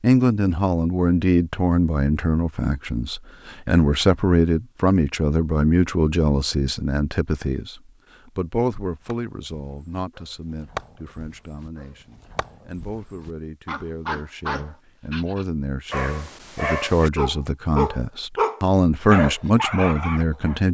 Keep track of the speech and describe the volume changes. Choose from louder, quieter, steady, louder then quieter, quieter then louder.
quieter then louder.